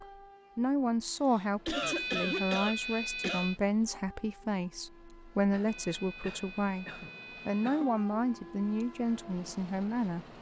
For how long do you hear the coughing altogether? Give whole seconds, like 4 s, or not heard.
5 s.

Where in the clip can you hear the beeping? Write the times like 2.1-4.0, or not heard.
1.8-3.6, 5.7-7.7.